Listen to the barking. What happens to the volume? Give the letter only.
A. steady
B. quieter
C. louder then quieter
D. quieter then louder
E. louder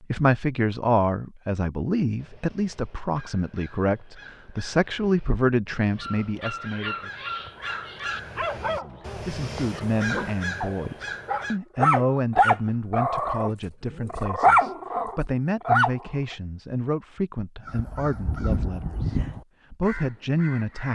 E.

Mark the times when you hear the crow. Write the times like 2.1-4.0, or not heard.
2.1-11.6, 17.6-20.9.